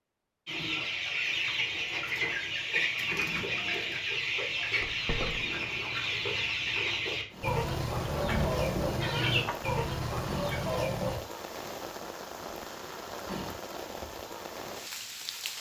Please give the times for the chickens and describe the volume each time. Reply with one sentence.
The chickens can be heard from 0.5 to 11.2 s, at a steady volume.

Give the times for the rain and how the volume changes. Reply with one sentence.
You can hear the rain from 7.3 to 15.5 s, at a steady volume.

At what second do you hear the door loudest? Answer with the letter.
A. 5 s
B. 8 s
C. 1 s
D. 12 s
B.